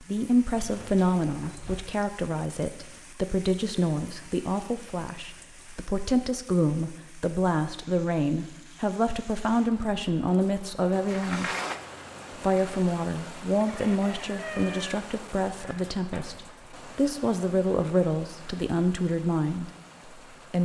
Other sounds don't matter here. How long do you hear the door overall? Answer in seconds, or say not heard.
3 s.